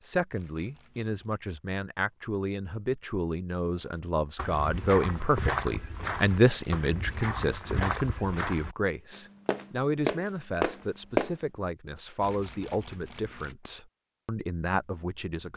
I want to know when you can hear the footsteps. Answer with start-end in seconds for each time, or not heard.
4.3-11.3.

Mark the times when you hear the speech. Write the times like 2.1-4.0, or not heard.
0.0-15.5.